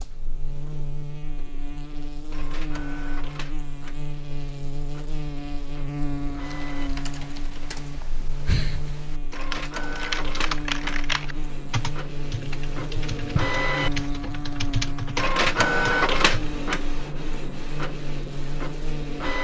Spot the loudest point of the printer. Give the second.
16 s.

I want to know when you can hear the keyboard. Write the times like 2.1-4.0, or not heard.
6.4-16.5.